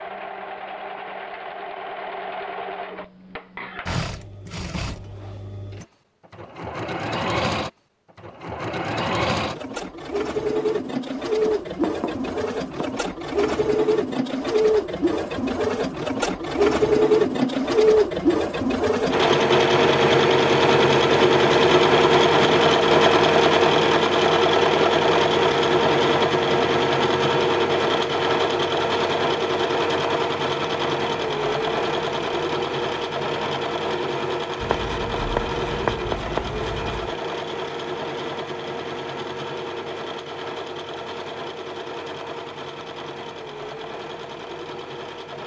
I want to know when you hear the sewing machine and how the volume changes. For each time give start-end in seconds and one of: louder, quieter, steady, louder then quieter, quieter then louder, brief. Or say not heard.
0.0-45.4 louder then quieter.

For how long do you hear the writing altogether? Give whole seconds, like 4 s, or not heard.
4 s.